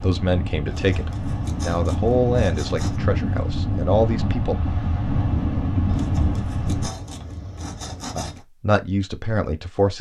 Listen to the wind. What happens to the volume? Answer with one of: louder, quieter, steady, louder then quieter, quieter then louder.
louder.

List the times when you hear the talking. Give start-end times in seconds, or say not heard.
0.0-4.5, 8.2-9.9.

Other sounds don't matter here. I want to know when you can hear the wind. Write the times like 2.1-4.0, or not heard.
0.0-6.9.